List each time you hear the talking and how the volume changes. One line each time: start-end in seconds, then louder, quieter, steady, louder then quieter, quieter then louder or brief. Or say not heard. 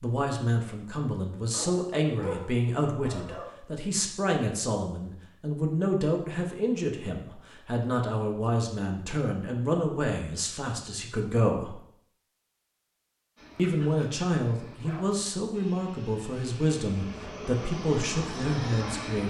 0.0-11.8 steady
13.6-19.2 steady.